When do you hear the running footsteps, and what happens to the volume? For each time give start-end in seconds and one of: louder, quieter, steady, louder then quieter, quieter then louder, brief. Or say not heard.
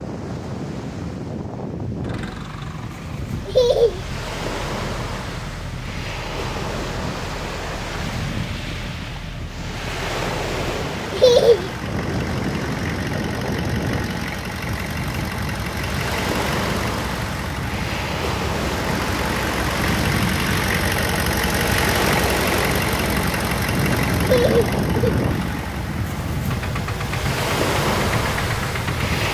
not heard.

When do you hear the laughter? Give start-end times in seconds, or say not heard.
3.5-4.0, 11.1-11.7, 24.2-25.2.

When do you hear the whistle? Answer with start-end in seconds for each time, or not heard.
not heard.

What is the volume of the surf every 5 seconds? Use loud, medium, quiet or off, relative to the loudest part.
medium, medium, loud, loud, loud, loud.